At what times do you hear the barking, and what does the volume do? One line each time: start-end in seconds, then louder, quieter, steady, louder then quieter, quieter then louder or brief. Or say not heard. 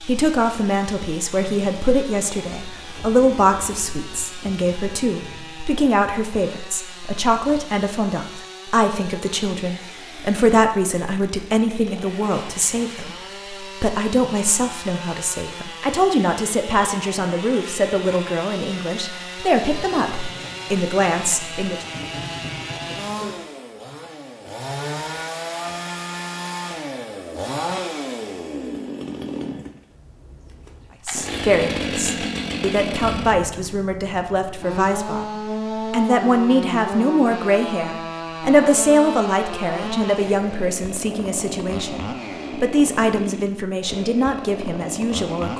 not heard.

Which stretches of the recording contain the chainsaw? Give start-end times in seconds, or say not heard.
0.0-45.5.